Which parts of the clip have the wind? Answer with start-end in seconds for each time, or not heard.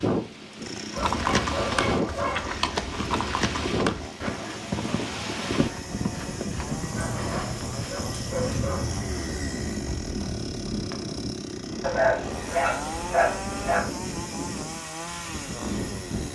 0.0-16.3.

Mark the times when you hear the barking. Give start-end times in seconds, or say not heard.
0.9-2.5, 6.8-8.8, 11.8-13.9.